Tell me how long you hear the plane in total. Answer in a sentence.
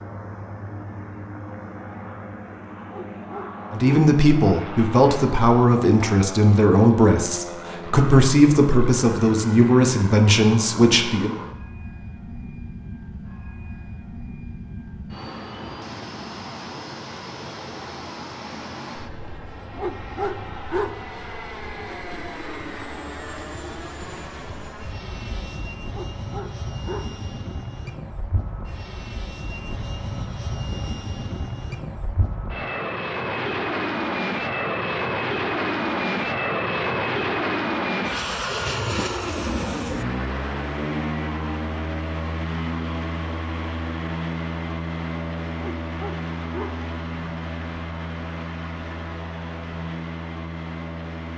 You can hear the plane for 51 seconds altogether.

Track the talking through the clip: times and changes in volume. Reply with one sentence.
The talking can be heard from 3.7 to 11.3 s, at a steady volume.